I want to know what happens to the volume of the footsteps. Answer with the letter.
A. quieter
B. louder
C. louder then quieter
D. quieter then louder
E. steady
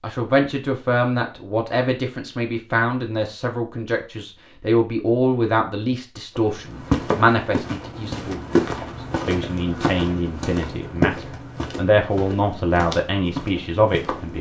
A.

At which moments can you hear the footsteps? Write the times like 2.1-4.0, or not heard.
6.3-14.3.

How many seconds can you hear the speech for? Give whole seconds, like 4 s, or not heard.
14 s.